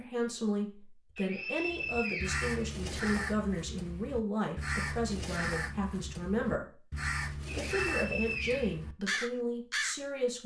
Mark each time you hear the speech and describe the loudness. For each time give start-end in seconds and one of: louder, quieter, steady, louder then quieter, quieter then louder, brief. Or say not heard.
0.0-10.4 steady.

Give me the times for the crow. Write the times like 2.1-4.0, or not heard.
1.6-10.0.